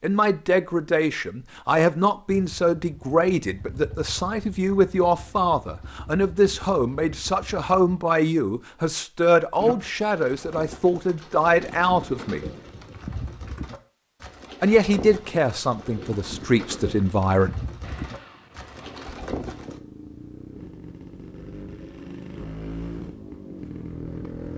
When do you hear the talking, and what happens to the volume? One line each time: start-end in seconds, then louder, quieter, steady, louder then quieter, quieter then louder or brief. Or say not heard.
0.0-12.4 steady
14.6-17.6 brief.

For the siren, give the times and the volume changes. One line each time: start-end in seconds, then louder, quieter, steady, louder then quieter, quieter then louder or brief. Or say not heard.
not heard.